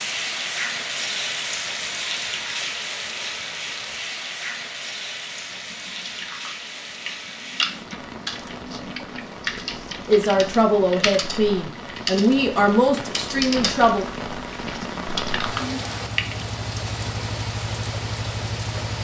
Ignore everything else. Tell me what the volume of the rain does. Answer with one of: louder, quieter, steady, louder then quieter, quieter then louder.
quieter then louder.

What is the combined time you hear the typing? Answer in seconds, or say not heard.
11 s.